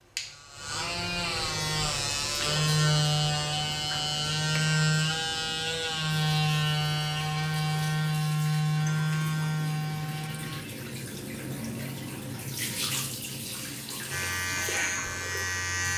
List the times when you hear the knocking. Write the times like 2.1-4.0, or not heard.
not heard.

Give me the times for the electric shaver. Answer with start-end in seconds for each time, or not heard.
0.0-10.6, 14.1-15.9.